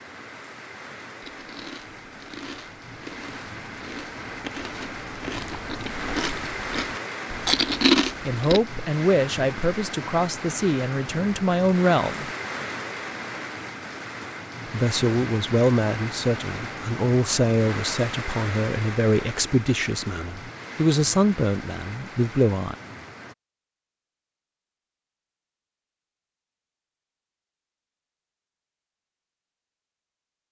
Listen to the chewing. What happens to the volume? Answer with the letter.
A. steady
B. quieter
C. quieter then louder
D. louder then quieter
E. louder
E.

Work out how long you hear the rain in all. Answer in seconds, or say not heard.
23 s.